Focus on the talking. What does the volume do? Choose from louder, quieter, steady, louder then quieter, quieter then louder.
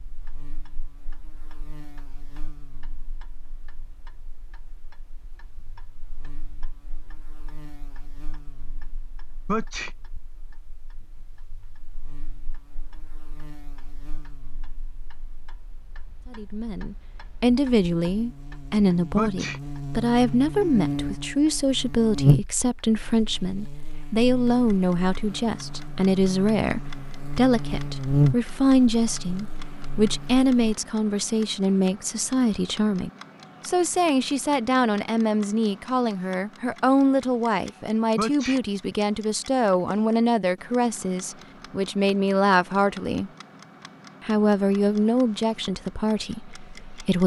steady.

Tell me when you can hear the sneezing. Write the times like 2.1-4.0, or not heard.
9.4-9.9, 19.1-19.6, 38.1-38.6.